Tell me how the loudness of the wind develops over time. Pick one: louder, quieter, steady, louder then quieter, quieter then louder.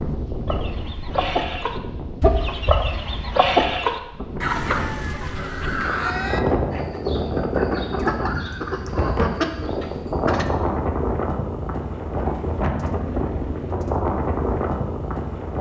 louder.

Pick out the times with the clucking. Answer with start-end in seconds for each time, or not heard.
0.5-10.4.